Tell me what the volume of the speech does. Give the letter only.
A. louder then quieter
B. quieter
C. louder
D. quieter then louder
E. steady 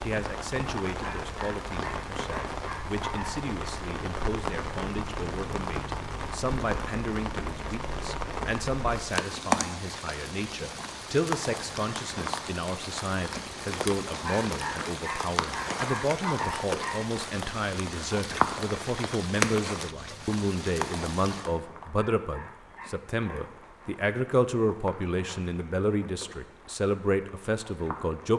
C.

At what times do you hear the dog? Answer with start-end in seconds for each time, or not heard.
1.0-3.5, 14.2-17.1, 21.9-23.5.